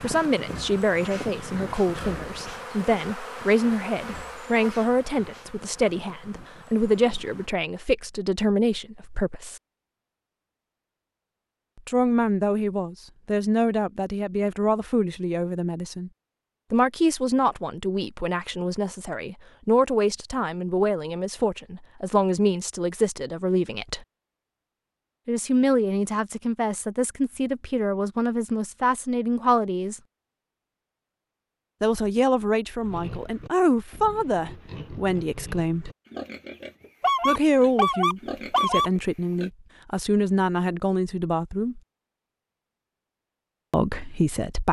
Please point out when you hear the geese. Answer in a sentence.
The geese can be heard from 37.0 to 38.9 s.